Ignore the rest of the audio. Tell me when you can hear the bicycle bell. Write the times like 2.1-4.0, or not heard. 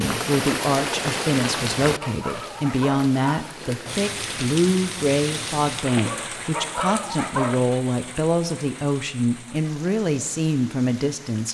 not heard.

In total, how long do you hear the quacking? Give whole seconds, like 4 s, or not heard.
not heard.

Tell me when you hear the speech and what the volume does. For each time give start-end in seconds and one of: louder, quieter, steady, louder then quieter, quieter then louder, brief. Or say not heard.
0.0-11.4 steady.